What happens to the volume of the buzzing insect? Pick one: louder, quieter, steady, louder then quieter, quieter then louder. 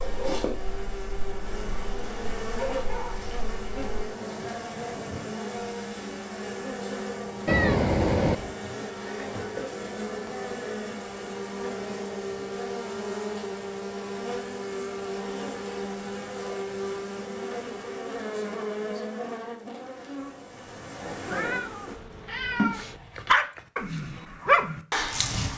steady.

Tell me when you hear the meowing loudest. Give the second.
8 s.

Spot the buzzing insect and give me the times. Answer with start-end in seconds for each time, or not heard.
0.0-23.4.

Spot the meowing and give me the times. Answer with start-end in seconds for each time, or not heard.
7.5-8.6, 21.2-23.0.